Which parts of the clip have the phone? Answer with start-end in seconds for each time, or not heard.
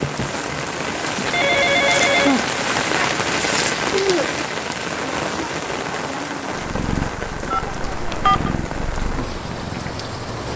1.2-2.5, 7.5-8.5.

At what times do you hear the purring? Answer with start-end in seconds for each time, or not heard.
6.5-10.3.